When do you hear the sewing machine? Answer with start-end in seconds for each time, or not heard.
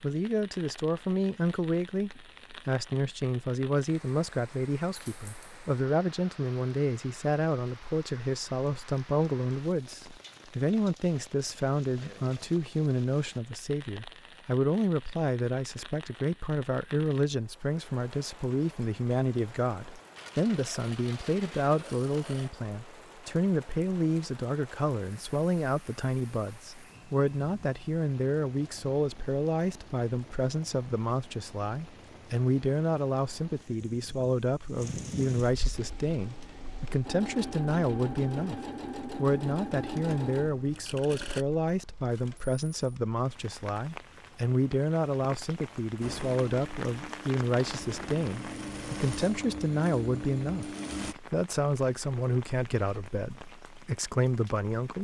35.7-41.5, 46.0-51.1.